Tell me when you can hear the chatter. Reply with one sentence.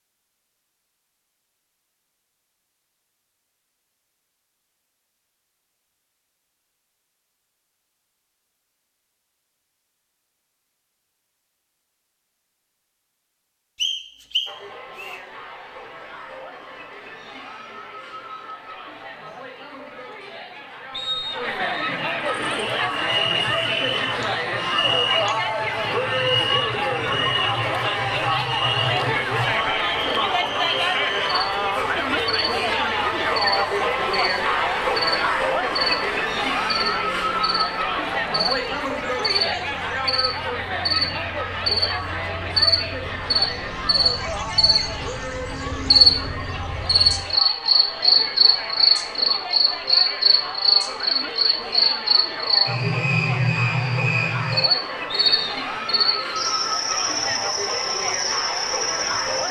The chatter can be heard from 14.4 to 59.4 s.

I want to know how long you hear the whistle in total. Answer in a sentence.
You can hear the whistle for 3 seconds altogether.